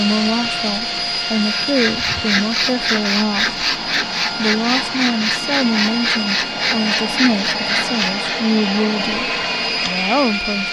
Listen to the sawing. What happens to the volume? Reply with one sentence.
The loudness of the sawing stays about the same.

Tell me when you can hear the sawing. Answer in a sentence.
The sawing can be heard from 1.4 to 8.4 s.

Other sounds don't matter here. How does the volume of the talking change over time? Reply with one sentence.
The volume of the talking stays about the same.